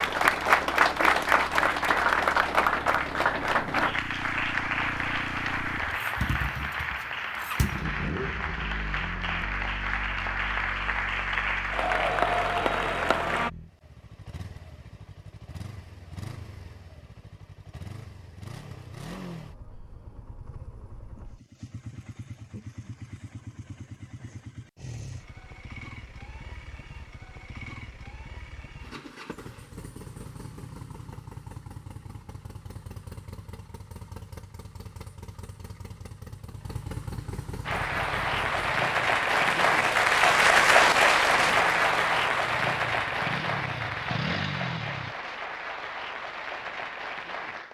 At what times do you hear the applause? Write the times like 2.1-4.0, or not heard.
0.0-13.5, 37.6-47.6.